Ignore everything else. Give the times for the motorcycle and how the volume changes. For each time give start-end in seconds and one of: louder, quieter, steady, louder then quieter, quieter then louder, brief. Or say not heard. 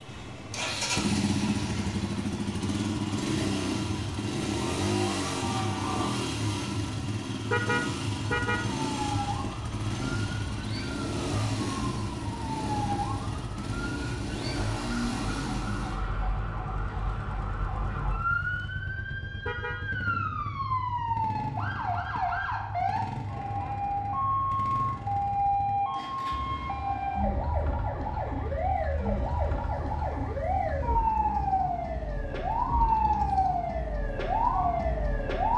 0.0-35.5 quieter.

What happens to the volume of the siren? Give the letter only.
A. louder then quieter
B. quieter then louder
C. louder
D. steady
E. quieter
C.